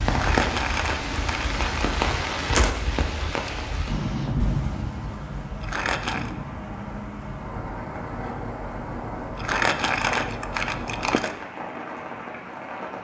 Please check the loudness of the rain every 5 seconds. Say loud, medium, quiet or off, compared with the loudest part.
loud, medium, medium.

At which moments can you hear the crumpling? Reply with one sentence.
The crumpling can be heard from 0.1 to 1.9 s, from 5.6 to 6.3 s and from 9.3 to 11.3 s.